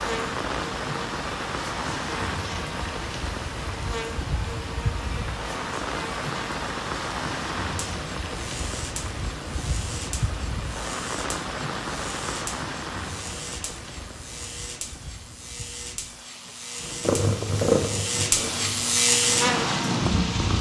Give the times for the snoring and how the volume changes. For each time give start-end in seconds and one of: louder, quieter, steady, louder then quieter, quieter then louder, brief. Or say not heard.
not heard.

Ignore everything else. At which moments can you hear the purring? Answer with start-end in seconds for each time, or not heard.
17.0-20.5.